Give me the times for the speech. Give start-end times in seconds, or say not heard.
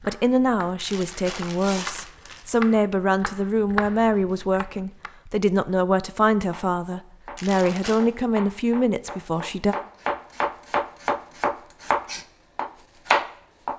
0.0-9.8.